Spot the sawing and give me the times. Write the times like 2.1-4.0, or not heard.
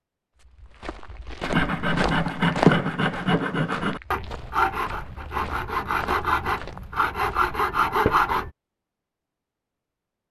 1.4-8.5.